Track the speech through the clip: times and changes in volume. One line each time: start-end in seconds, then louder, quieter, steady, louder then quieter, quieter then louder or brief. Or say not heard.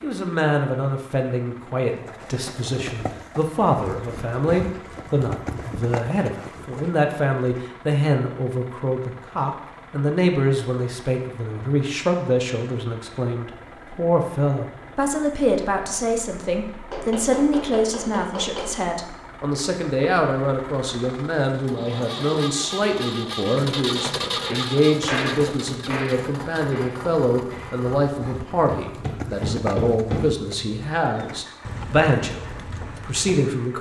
0.0-33.7 steady.